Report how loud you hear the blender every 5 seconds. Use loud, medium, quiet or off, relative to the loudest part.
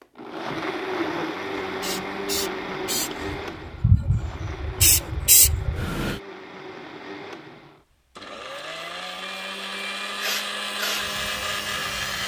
loud, medium, loud.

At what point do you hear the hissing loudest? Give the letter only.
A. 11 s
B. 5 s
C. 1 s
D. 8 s
B.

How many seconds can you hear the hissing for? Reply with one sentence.
You can hear the hissing for 6 seconds altogether.